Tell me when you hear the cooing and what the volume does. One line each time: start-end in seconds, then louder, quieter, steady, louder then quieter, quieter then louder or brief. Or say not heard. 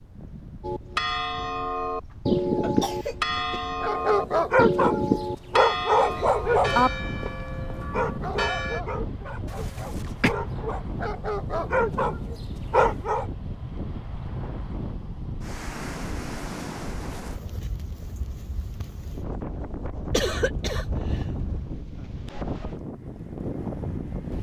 not heard.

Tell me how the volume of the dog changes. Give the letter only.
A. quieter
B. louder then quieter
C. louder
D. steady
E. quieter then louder
E.